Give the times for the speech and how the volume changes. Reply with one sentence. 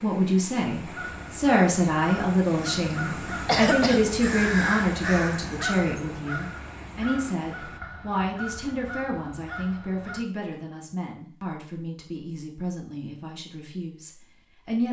The speech can be heard from 0.0 to 14.8 s, getting quieter.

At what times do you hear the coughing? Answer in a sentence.
The coughing can be heard from 2.5 to 4.0 s.